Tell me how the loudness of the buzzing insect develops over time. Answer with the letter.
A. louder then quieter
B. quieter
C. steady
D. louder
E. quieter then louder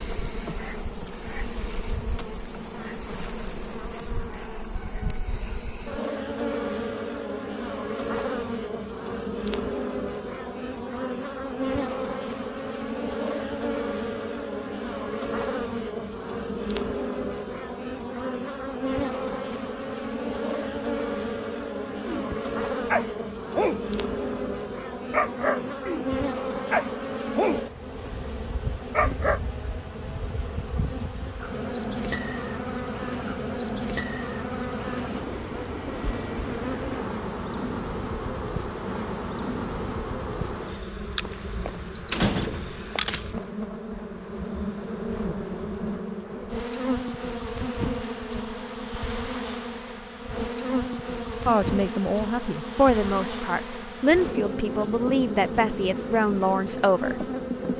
C.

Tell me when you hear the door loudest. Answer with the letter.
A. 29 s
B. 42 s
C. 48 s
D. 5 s
B.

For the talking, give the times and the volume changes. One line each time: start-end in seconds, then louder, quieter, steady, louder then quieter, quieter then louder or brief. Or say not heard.
51.5-57.2 steady.